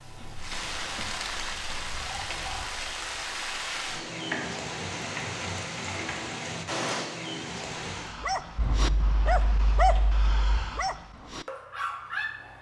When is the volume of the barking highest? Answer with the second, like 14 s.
10 s.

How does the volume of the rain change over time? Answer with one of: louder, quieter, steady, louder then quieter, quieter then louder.
steady.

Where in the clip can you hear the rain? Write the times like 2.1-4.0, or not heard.
0.0-8.2.